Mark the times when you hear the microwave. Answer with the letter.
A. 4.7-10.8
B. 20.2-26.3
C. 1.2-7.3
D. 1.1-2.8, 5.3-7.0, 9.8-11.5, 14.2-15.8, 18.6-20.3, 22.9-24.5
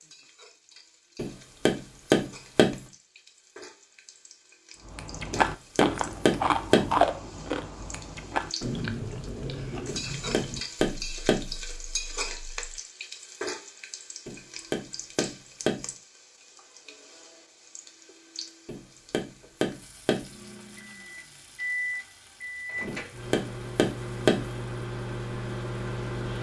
B.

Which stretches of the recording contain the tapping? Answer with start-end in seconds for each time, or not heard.
1.1-2.8, 5.3-7.0, 9.8-11.5, 14.2-15.8, 18.6-20.3, 22.9-24.5.